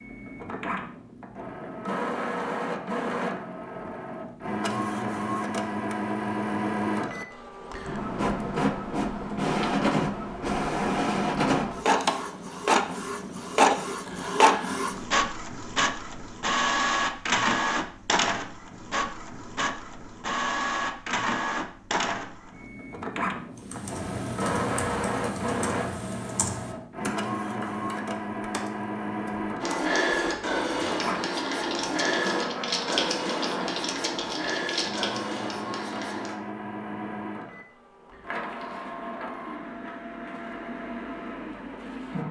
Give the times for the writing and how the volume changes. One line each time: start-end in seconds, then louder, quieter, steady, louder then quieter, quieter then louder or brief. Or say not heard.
29.6-36.4 quieter.